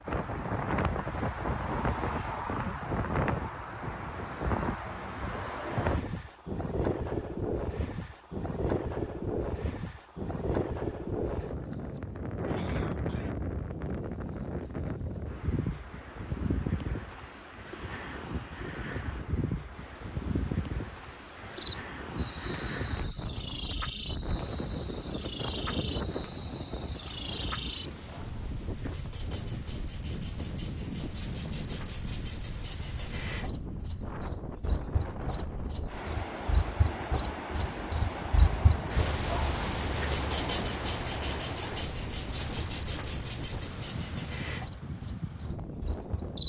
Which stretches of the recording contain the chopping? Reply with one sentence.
The chopping can't be heard in this clip.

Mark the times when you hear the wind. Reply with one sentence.
The wind can be heard from 0.0 to 46.4 s.